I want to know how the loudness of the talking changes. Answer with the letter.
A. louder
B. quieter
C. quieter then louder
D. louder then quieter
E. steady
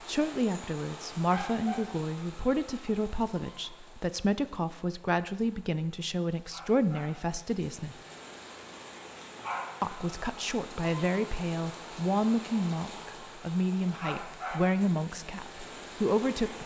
E.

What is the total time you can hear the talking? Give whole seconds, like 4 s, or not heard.
15 s.